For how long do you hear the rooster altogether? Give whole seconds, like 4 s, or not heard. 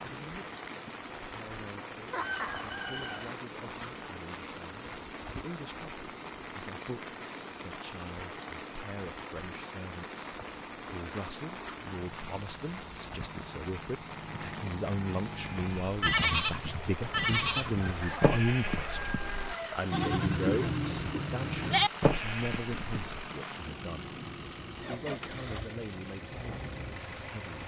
3 s.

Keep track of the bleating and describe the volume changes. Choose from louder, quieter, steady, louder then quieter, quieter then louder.
quieter then louder.